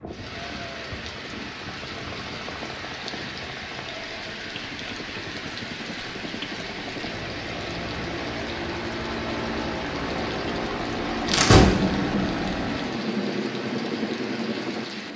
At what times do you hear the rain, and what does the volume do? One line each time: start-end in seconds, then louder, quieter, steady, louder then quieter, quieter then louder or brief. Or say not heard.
0.1-15.1 steady.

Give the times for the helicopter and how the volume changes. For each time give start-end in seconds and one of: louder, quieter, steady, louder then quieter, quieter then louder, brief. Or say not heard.
0.0-15.1 louder.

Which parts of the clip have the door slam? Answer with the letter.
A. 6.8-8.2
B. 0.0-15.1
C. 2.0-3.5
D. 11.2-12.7
D.